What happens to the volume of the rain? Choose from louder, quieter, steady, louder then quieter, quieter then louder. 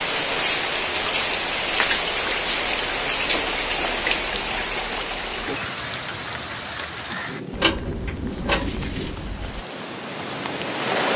quieter.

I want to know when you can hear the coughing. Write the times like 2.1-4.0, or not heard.
not heard.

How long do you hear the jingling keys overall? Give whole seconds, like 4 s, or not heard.
2 s.